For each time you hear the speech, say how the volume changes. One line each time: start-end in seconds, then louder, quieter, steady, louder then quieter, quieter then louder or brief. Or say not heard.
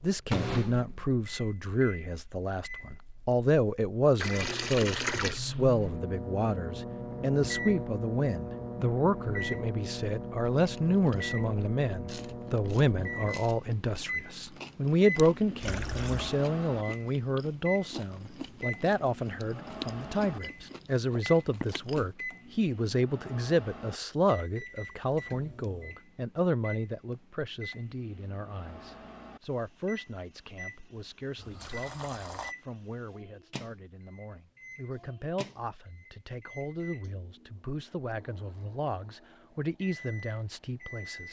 0.0-41.2 quieter.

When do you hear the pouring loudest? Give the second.
5 s.